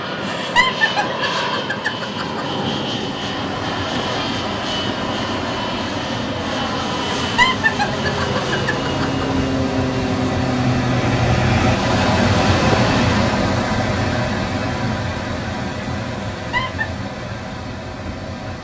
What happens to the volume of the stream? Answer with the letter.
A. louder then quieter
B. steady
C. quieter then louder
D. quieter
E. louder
A.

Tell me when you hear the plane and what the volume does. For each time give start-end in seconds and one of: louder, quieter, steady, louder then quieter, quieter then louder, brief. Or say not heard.
0.0-13.3 steady.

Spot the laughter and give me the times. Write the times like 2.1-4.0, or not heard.
0.2-2.5, 7.2-9.2, 16.4-16.9.